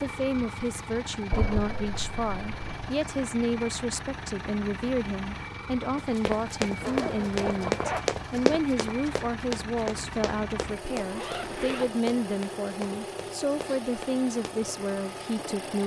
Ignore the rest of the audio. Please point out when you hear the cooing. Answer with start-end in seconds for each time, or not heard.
not heard.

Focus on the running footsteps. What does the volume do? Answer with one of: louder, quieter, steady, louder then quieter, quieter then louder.
quieter.